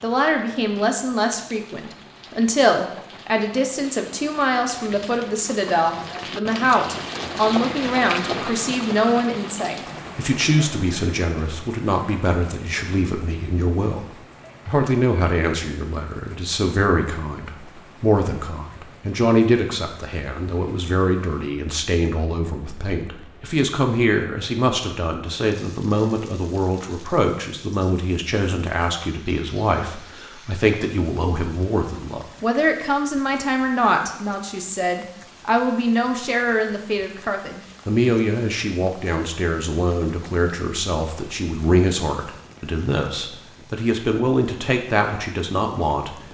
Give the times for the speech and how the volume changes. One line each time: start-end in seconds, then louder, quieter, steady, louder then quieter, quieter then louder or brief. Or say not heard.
0.0-46.1 steady.